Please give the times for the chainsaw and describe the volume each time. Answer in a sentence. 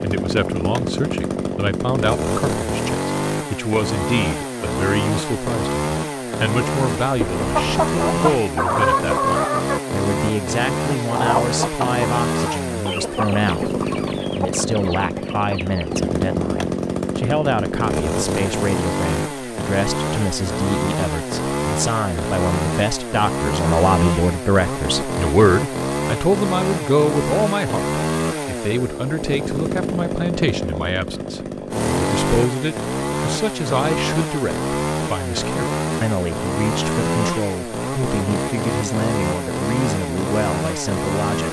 The chainsaw can be heard from 0.0 to 41.4 s, at a steady volume.